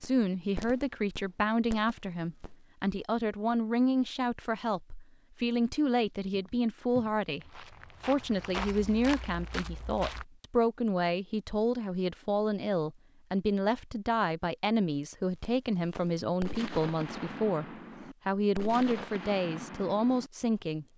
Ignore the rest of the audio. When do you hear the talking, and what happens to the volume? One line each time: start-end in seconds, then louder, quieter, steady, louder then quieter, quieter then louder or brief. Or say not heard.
0.0-17.6 steady
18.2-20.9 brief.